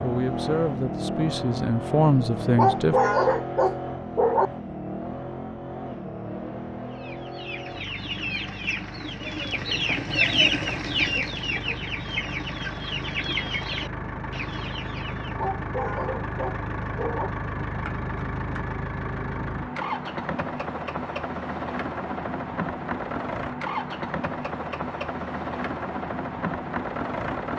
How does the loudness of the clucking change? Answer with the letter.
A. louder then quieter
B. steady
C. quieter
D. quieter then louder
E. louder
A.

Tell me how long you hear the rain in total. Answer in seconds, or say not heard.
not heard.